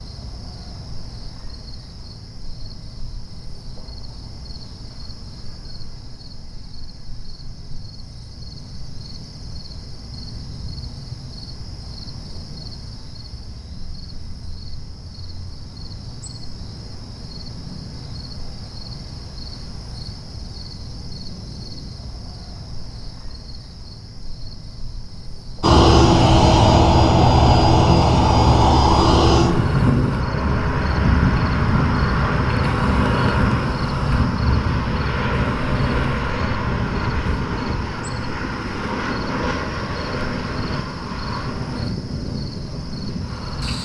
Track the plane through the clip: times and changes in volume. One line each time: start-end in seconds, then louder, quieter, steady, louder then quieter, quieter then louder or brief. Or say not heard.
25.6-43.7 quieter.